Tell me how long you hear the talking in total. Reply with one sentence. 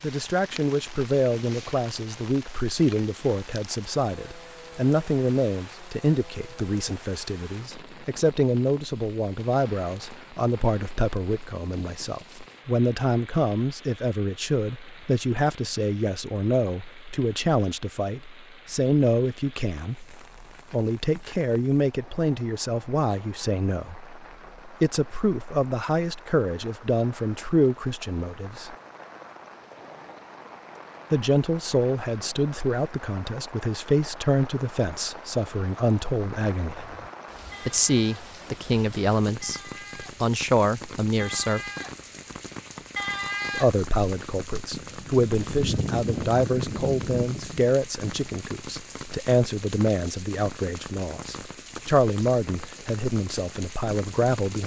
The talking can be heard for 50 seconds in total.